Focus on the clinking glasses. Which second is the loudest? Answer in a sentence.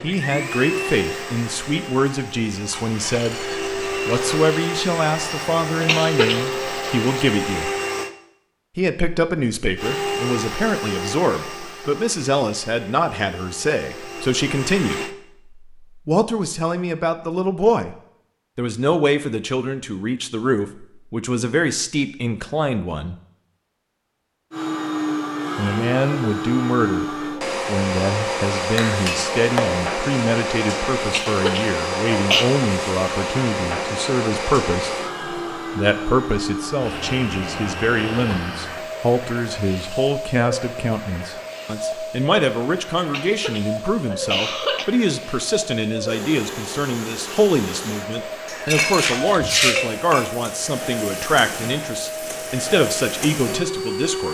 The volume of the clinking glasses peaks at 50 seconds.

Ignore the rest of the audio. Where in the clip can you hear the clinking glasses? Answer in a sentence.
You can hear the clinking glasses from 2.7 to 4.5 s, from 28.8 to 29.9 s and from 48.5 to 50.3 s.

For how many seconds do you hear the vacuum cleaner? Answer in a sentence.
You can hear the vacuum cleaner for 43 seconds altogether.